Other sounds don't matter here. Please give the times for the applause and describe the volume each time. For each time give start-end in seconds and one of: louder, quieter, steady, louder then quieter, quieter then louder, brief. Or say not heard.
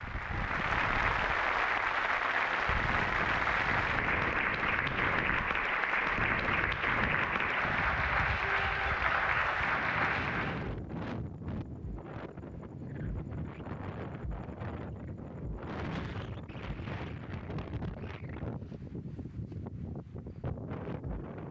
0.0-10.7 steady.